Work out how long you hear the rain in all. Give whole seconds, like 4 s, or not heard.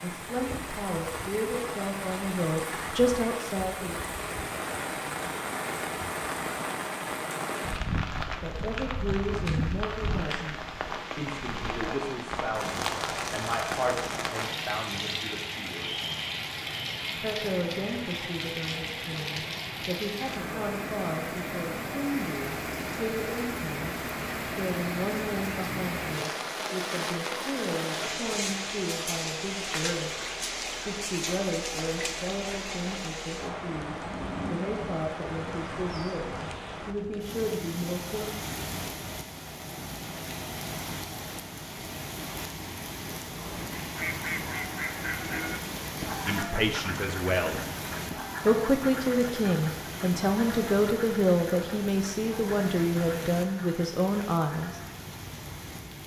56 s.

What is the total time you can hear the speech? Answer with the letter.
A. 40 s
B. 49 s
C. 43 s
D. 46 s
A.